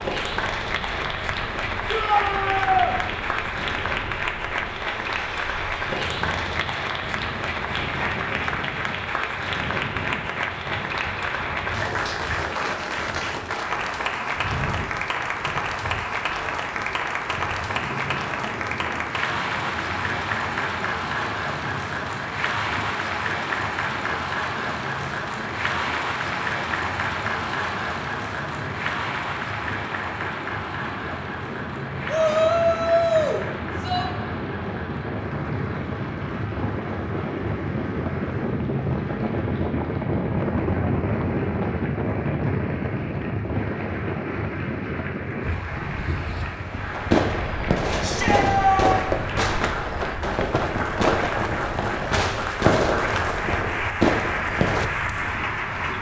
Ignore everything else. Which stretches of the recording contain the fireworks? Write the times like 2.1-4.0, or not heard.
46.9-54.9.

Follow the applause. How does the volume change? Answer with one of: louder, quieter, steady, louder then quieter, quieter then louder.
quieter then louder.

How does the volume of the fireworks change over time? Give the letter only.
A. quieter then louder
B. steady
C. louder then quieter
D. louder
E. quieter
B.